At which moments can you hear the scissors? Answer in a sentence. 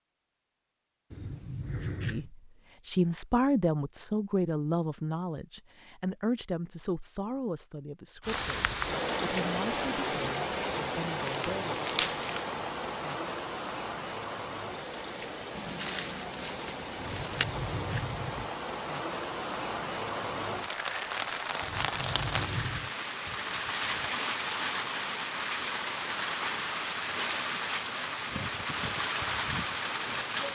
The scissors can be heard from 1.1 to 2.3 s, from 16.9 to 18.5 s and from 21.6 to 22.9 s.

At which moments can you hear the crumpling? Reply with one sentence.
You can hear the crumpling from 11.2 to 12.4 s and from 15.6 to 17.4 s.